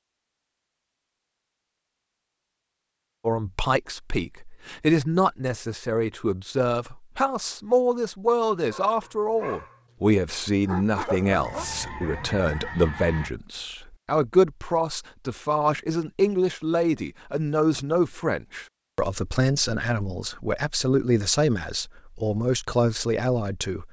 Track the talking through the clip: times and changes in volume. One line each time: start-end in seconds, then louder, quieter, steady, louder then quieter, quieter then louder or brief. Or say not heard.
3.2-23.8 steady.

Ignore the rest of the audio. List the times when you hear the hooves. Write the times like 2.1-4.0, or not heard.
not heard.